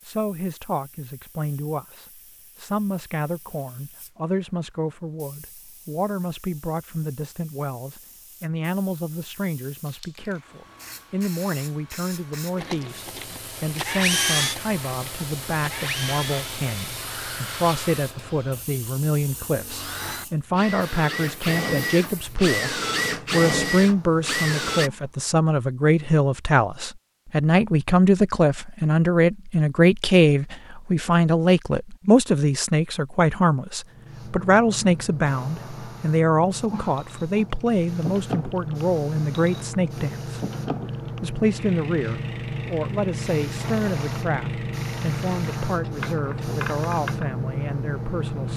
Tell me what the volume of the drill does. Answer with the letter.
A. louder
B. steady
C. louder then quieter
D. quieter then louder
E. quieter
D.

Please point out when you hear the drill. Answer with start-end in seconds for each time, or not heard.
12.6-24.9.